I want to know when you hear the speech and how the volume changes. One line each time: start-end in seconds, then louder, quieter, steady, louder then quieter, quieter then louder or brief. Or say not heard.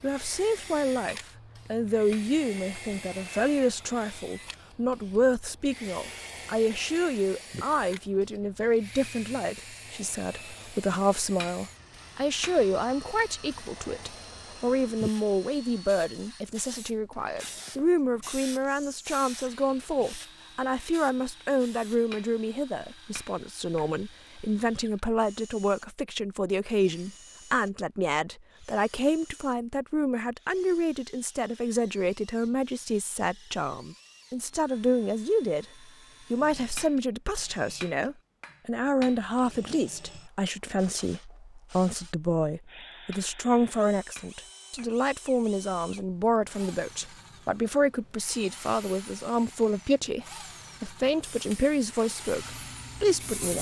0.0-35.6 steady
36.3-53.5 steady.